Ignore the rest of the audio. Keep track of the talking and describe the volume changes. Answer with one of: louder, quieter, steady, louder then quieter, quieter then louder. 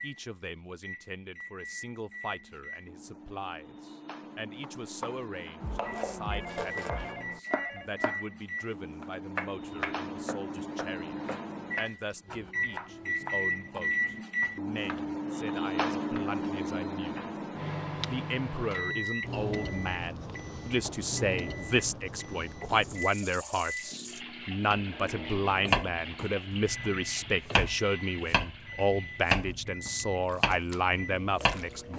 louder.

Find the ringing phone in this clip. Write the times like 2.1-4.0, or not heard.
6.3-7.9.